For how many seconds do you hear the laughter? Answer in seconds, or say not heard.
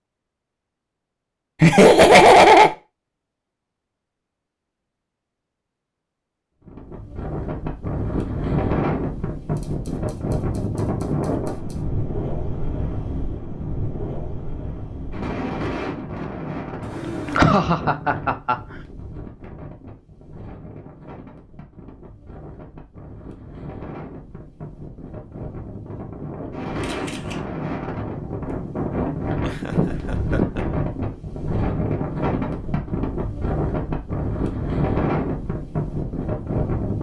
4 s.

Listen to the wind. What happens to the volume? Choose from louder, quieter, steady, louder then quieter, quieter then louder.
quieter then louder.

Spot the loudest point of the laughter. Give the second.
2 s.